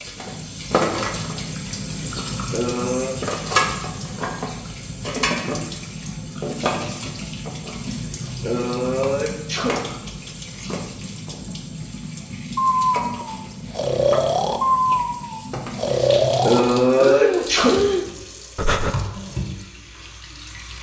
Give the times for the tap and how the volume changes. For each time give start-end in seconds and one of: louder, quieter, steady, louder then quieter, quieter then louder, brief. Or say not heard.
0.0-20.7 quieter.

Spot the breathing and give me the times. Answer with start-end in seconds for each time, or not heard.
12.6-18.9.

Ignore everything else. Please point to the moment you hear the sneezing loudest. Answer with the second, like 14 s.
17 s.